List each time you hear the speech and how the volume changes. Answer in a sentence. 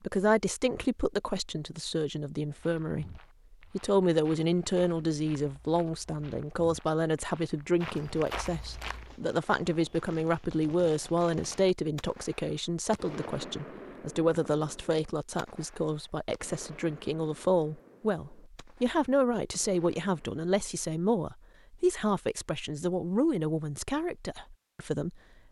The speech can be heard from 0.0 to 25.2 s, at a steady volume.